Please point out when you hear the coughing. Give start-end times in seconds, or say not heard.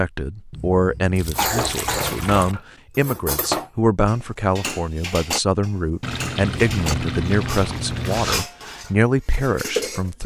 1.4-2.1.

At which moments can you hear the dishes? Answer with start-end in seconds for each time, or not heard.
1.3-10.1.